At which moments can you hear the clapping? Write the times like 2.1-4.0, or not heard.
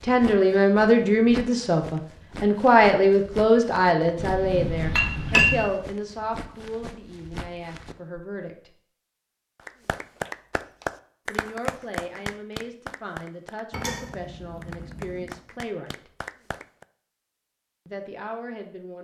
9.7-16.9.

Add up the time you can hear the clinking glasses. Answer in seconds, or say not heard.
3 s.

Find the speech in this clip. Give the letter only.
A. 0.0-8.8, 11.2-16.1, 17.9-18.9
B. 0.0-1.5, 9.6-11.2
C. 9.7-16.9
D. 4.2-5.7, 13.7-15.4
A.